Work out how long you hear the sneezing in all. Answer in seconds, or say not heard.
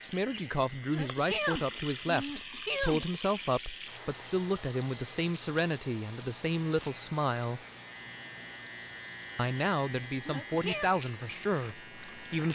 3 s.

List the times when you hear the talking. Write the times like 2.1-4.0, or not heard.
0.0-7.6, 9.3-12.5.